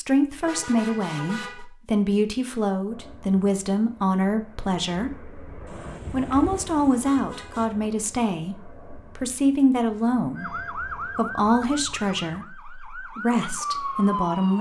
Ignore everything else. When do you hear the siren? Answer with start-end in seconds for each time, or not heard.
10.3-14.5.